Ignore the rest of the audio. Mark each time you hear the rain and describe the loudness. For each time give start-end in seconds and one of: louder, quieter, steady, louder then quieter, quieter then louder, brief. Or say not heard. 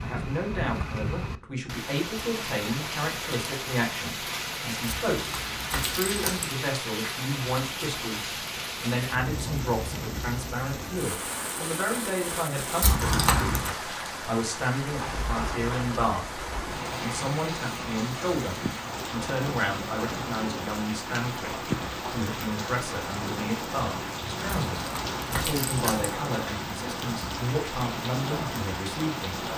0.0-29.5 steady.